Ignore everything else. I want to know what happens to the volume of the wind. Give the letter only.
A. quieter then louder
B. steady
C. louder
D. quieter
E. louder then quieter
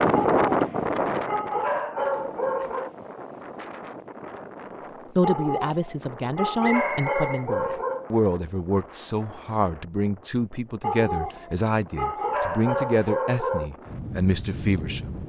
A.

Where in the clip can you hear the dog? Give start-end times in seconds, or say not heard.
0.1-3.0, 5.2-8.1, 10.8-13.7.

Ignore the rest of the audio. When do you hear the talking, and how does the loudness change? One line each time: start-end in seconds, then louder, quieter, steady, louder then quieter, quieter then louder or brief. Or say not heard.
5.2-15.2 steady.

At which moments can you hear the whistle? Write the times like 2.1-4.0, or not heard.
6.6-7.5.